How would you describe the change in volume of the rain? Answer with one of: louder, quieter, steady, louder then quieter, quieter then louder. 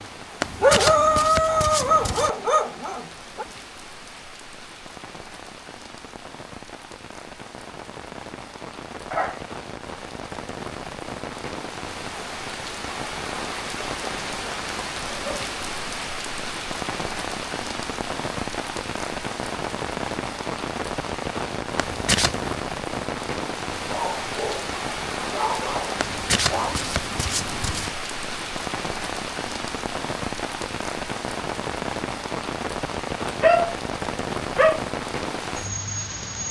louder.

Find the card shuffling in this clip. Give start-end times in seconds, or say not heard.
0.4-2.3, 21.8-22.6, 26.0-27.9.